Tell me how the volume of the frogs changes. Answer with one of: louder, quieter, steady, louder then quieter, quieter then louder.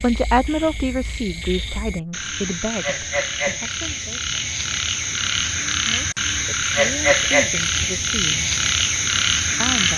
louder.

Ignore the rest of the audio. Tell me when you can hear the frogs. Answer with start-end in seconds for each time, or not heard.
0.0-9.9.